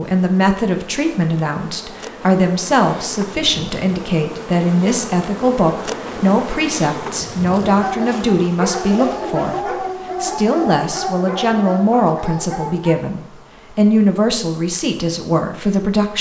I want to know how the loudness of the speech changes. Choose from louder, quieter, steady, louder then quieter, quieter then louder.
steady.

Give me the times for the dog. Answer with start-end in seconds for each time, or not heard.
7.7-12.9.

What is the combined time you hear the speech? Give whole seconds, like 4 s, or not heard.
16 s.